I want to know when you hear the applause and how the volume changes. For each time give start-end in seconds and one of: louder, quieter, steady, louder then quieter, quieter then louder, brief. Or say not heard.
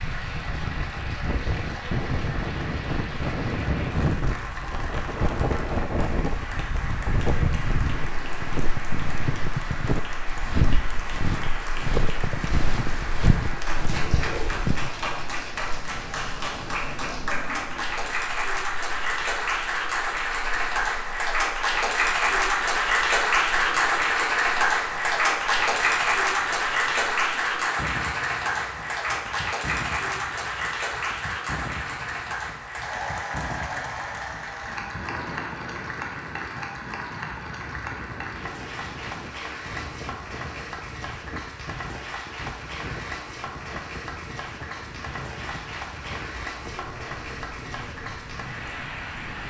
0.0-49.4 louder then quieter.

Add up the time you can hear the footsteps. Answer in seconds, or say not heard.
8 s.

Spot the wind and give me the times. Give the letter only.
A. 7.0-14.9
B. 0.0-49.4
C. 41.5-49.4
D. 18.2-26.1
B.